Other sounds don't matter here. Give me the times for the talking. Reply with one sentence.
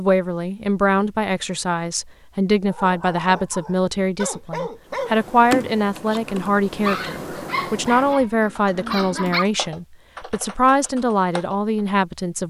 You can hear the talking from 0.0 to 12.4 s.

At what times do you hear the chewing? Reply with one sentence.
The chewing can't be heard in this clip.